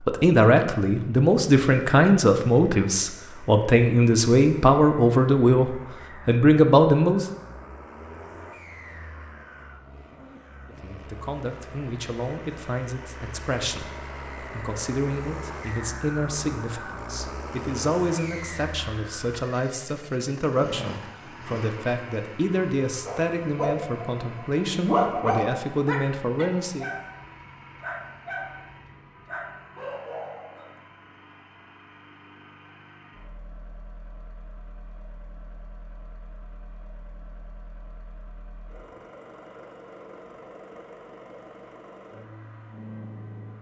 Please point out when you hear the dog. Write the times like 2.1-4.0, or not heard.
23.1-30.8.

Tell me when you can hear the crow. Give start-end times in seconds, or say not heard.
not heard.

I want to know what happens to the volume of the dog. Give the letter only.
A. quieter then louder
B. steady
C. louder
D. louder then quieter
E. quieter
D.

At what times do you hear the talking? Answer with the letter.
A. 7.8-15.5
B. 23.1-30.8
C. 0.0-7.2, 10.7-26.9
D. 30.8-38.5
C.